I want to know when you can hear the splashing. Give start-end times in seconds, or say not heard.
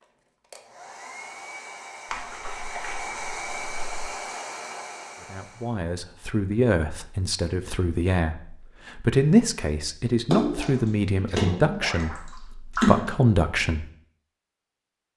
2.1-4.0, 10.3-13.1.